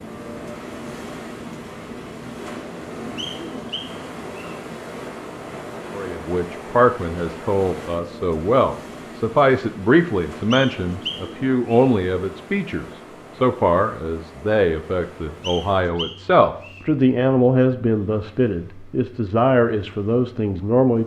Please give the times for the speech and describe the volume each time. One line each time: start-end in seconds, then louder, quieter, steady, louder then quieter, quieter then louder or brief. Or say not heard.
6.0-21.0 steady.